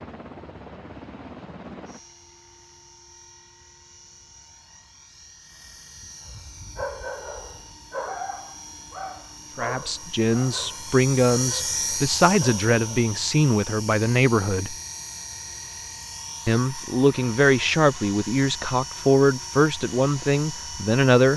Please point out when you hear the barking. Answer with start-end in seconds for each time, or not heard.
6.7-13.1.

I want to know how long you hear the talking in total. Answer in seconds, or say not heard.
10 s.